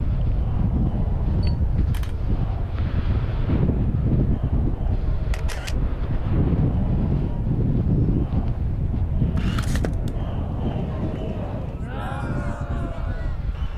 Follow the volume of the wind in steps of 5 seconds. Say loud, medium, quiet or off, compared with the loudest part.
loud, loud, medium.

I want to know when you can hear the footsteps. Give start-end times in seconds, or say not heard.
not heard.